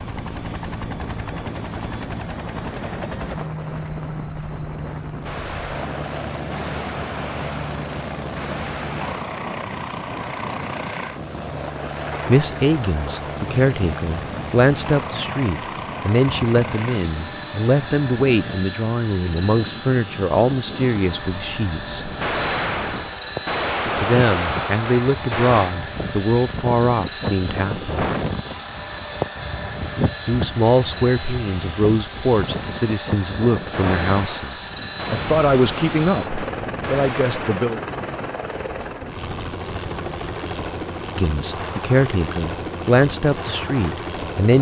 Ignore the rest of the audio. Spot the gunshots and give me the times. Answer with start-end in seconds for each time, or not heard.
5.2-9.1, 22.1-25.8, 33.7-37.7.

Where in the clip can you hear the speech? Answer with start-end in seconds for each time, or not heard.
12.2-22.1, 23.9-28.1, 30.2-37.8, 41.1-44.5.